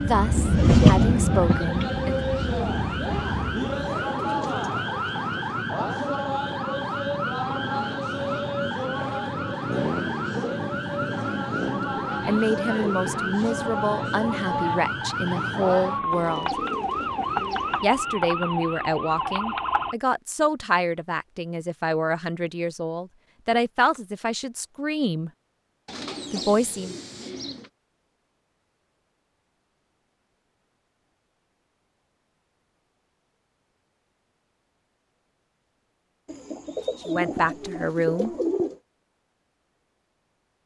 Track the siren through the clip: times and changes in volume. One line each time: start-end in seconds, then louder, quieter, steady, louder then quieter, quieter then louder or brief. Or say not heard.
0.0-19.9 steady.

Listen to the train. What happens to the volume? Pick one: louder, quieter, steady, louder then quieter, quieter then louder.
quieter.